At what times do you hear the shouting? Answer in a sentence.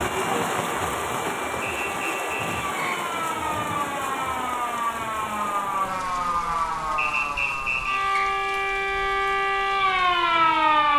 The shouting can't be heard in this clip.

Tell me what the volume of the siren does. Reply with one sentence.
The volume of the siren goes up.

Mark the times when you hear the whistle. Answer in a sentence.
The whistle can be heard from 1.6 to 3.0 s and from 7.0 to 8.3 s.